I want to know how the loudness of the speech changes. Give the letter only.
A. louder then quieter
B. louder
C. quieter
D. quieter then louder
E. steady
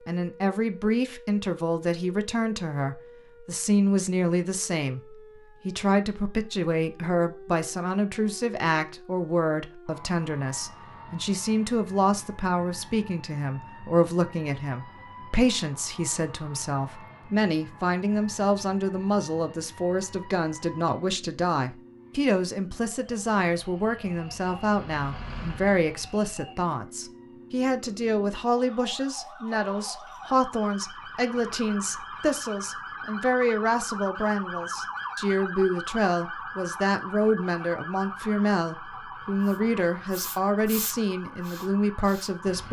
E.